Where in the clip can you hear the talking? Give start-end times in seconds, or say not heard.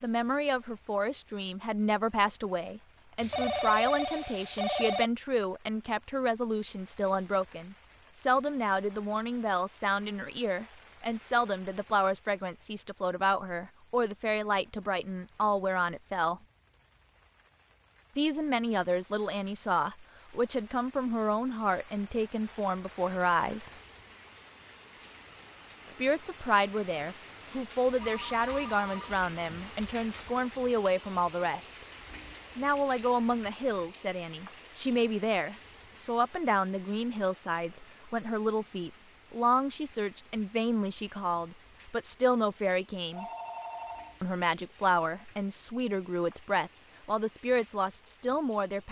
0.0-16.4, 18.1-23.7, 25.9-31.9, 32.5-43.2, 44.2-48.8.